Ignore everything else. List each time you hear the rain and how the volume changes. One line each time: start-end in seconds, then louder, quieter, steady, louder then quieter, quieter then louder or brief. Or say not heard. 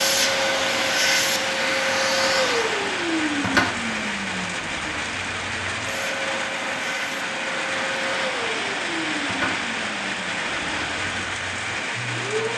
0.0-12.5 steady.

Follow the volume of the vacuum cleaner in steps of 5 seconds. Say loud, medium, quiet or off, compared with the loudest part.
loud, medium, medium.